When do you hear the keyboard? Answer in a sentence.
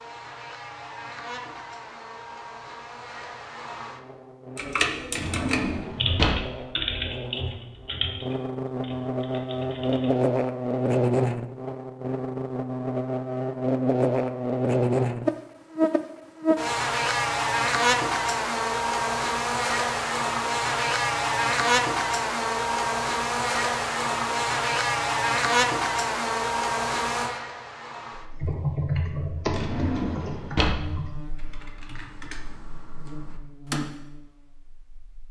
The keyboard can be heard from 4.5 to 10.2 s and from 28.4 to 33.8 s.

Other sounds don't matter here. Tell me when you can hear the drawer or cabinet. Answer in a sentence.
The drawer or cabinet can be heard from 5.1 to 6.6 s and from 29.4 to 31.6 s.